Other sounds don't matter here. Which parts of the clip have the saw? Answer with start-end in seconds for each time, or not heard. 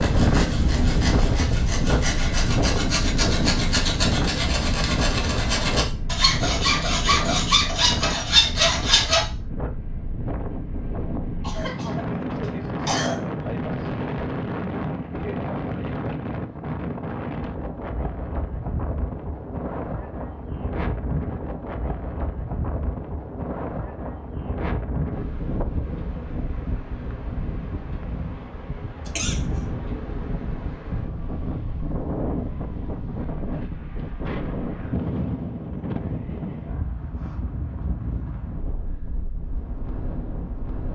0.0-9.2.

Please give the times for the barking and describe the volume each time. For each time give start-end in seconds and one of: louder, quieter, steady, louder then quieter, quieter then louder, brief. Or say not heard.
not heard.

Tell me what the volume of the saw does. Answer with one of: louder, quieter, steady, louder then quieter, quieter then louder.
louder.